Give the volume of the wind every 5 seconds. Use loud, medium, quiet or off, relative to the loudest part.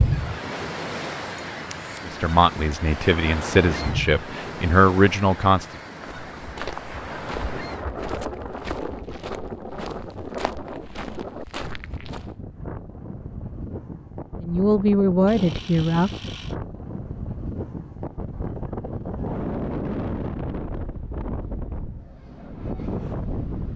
loud, loud, medium, loud, loud.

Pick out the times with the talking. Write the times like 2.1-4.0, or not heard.
2.0-5.8, 14.4-16.3.